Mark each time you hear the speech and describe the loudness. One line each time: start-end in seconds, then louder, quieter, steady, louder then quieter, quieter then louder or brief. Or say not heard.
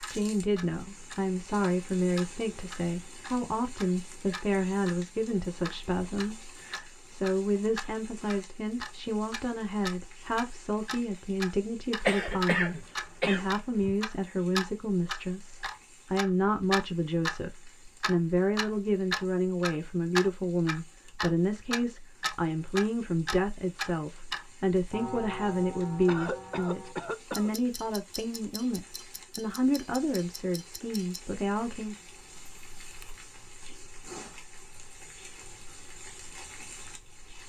0.0-31.9 steady.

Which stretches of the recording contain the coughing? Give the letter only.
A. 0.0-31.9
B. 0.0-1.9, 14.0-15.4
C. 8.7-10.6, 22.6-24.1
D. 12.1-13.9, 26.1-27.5
D.